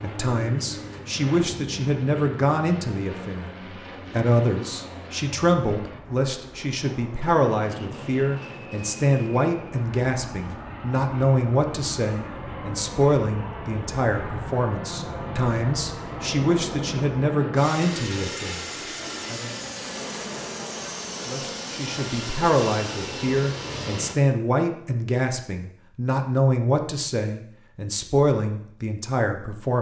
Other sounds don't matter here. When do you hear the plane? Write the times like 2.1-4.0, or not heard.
0.0-24.1.